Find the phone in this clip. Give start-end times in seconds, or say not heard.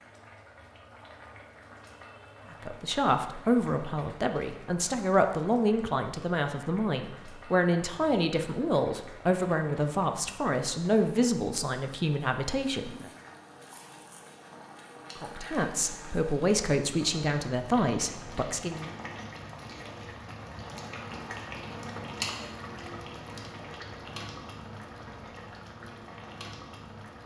not heard.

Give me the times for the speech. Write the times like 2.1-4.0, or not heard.
2.5-13.1, 15.2-18.9.